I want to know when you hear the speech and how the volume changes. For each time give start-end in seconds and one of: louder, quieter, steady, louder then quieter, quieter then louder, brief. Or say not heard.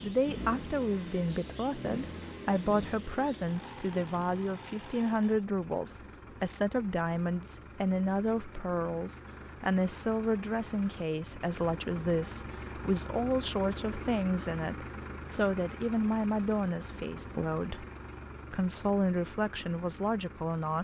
0.0-17.9 steady
18.5-20.7 brief.